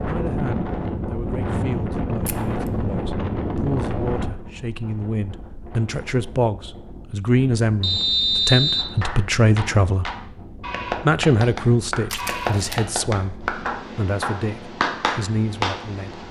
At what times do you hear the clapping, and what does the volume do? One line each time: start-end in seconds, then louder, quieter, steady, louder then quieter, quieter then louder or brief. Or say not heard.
8.8-15.8 louder.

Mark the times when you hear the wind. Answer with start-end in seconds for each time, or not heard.
0.0-16.2.